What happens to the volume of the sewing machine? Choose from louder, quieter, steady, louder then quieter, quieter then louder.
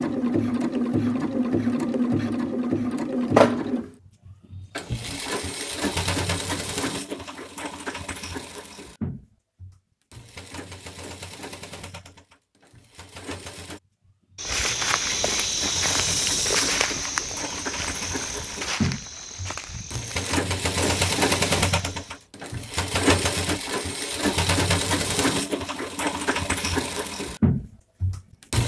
quieter then louder.